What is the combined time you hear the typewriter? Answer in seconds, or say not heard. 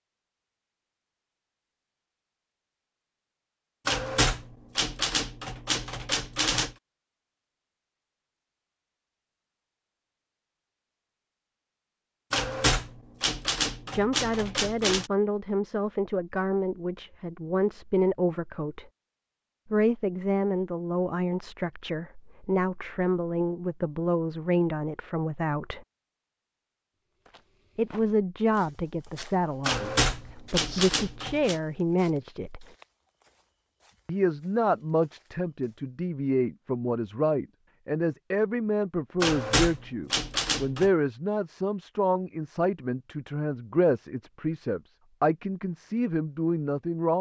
9 s.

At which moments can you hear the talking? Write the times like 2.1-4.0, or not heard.
13.9-18.9, 19.7-25.9, 27.8-32.6, 34.0-47.1.